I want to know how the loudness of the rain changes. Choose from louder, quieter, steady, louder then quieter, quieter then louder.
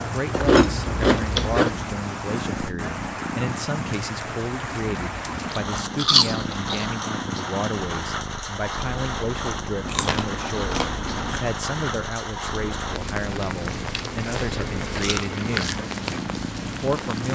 steady.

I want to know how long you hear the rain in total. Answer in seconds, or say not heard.
17 s.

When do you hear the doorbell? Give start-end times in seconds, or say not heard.
not heard.